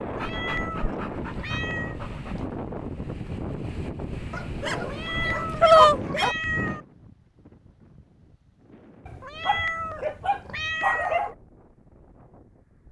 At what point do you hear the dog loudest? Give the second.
6 s.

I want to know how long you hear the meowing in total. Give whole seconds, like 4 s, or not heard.
6 s.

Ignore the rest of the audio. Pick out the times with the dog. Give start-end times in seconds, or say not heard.
0.1-2.5, 4.3-6.3, 9.1-11.3.